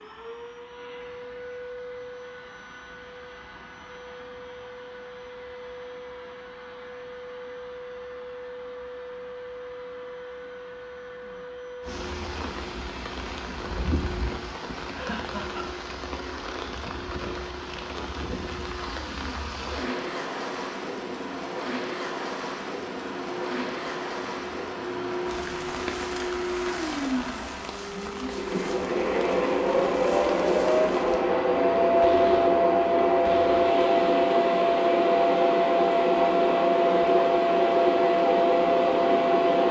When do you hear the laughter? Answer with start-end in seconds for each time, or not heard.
14.9-15.7.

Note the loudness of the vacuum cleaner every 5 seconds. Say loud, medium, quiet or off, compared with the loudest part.
quiet, quiet, quiet, quiet, quiet, medium, loud, loud.